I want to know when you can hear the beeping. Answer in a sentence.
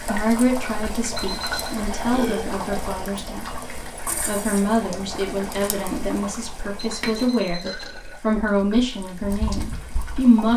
You can hear the beeping from 1.1 to 1.7 s and from 6.8 to 8.0 s.